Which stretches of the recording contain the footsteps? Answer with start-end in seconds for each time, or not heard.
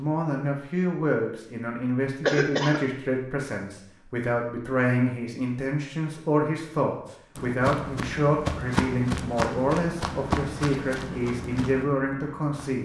7.3-12.8.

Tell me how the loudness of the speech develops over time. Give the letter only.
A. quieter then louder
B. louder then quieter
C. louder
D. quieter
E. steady
E.